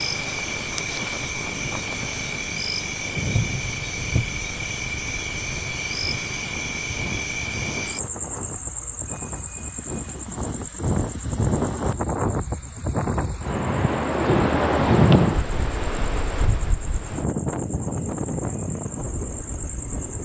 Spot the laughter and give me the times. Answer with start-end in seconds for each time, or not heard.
not heard.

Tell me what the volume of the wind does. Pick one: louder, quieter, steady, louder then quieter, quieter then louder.
louder then quieter.